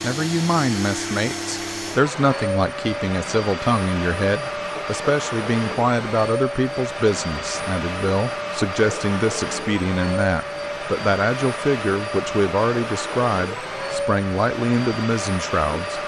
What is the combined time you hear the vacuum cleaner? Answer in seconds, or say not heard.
16 s.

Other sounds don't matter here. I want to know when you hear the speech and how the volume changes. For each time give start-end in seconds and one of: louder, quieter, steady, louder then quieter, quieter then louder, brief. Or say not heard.
0.0-16.0 steady.